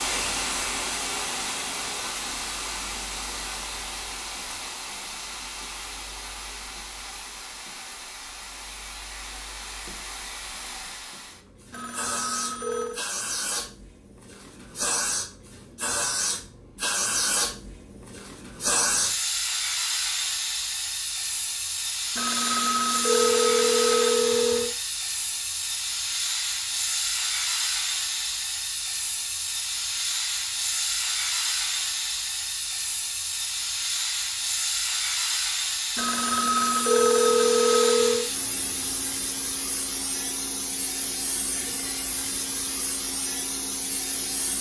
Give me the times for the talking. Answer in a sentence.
The talking can't be heard in this clip.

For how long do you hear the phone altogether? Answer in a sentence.
You can hear the phone for 6 seconds altogether.